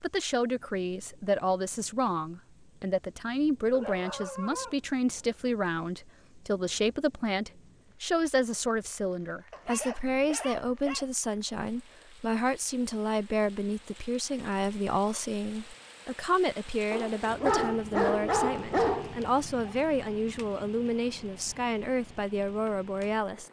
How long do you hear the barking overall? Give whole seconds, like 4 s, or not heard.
6 s.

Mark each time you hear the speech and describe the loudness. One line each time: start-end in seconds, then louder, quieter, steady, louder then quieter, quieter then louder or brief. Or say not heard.
0.0-23.4 steady.